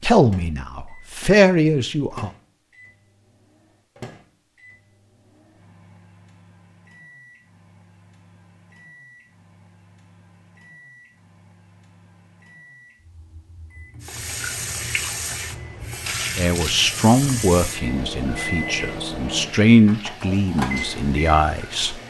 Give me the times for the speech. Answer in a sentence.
You can hear the speech from 0.0 to 2.3 s and from 16.4 to 22.0 s.